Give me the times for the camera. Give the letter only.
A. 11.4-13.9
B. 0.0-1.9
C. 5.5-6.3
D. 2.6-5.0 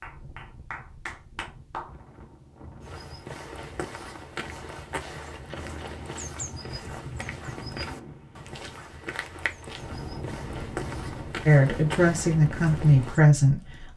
C.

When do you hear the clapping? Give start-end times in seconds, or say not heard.
0.0-1.9.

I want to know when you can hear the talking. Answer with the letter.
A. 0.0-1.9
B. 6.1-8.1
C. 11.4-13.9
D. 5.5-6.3
C.